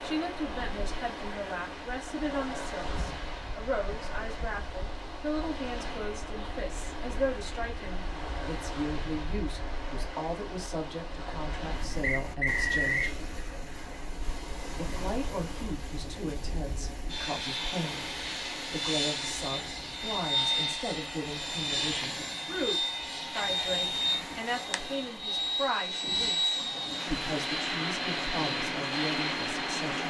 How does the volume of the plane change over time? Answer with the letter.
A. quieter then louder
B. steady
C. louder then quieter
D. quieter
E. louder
E.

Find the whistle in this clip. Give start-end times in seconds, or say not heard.
12.0-13.2.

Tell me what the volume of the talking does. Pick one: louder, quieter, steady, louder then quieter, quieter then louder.
steady.